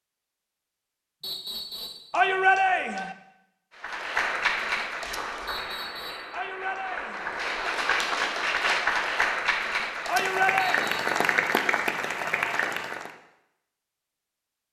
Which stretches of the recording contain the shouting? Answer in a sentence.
You can hear the shouting from 2.1 to 3.1 s, from 6.3 to 7.3 s and from 10.1 to 10.9 s.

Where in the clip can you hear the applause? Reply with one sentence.
You can hear the applause from 3.8 to 13.1 s.